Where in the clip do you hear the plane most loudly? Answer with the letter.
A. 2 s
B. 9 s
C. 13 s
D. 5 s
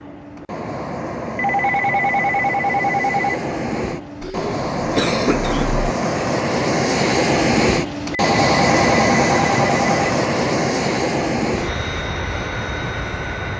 B.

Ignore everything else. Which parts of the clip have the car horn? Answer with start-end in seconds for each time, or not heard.
not heard.